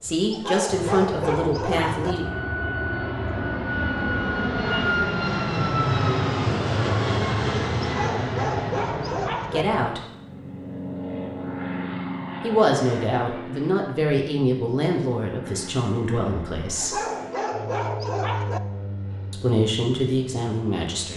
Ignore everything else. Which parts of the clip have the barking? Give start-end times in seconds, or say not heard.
0.3-2.1, 7.8-9.7, 16.8-18.6.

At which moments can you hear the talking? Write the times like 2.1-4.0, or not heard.
0.0-2.2, 9.5-10.0, 12.4-17.0, 19.3-21.1.